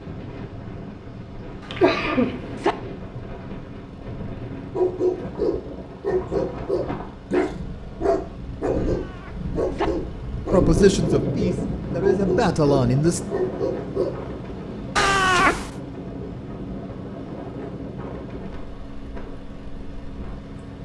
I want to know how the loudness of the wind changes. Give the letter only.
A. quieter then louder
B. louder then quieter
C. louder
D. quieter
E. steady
B.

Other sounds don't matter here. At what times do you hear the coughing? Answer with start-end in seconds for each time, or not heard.
1.7-2.4.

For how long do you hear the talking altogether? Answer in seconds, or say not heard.
3 s.